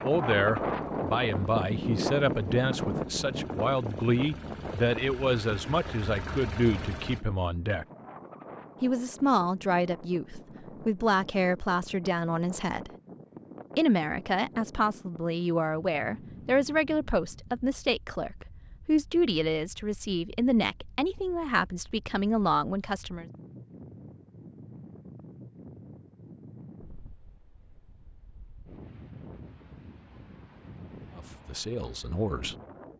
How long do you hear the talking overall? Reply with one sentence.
The talking can be heard for 23 seconds in total.